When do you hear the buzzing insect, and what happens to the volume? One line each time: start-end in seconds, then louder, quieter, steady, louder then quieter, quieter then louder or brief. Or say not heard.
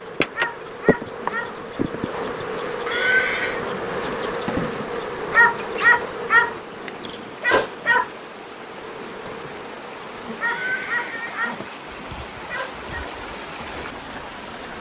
0.0-14.7 quieter.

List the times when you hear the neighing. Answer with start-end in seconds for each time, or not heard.
2.9-3.6, 10.4-11.7.